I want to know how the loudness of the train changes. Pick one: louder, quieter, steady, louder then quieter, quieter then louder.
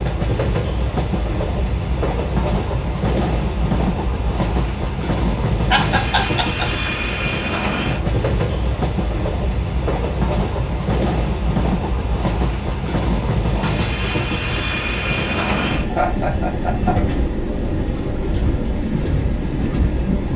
steady.